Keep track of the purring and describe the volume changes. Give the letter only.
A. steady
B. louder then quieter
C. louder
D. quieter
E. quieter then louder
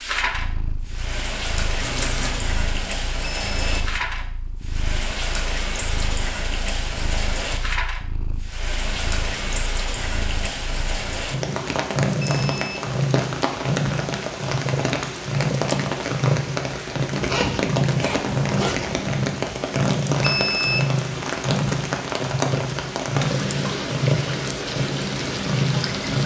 C.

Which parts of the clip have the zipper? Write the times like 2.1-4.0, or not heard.
1.8-2.5, 17.1-18.9.